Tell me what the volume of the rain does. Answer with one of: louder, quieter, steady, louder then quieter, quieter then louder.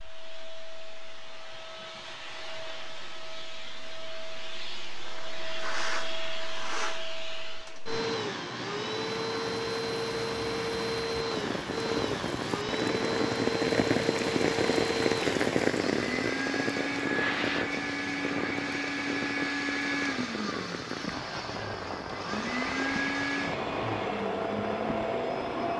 louder then quieter.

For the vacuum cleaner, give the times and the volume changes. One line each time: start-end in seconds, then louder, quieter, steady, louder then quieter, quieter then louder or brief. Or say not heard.
0.0-25.7 louder.